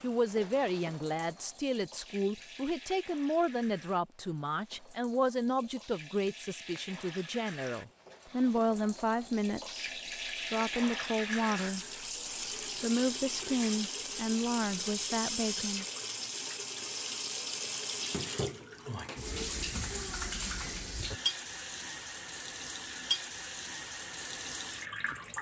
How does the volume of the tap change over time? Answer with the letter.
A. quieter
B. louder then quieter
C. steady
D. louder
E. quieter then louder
D.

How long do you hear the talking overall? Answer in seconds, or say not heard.
14 s.